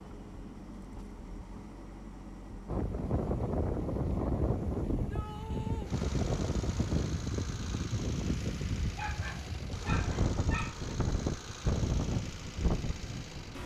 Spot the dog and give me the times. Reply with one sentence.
You can hear the dog from 8.9 to 10.9 s.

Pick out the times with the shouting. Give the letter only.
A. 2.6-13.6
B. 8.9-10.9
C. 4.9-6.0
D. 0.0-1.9
C.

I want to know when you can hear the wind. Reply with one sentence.
The wind can be heard from 2.6 to 13.6 s.